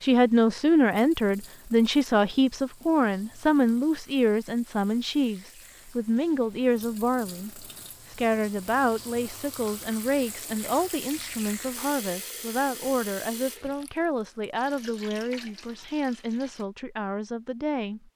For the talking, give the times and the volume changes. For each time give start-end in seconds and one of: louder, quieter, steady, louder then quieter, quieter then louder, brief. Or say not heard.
0.0-18.1 quieter.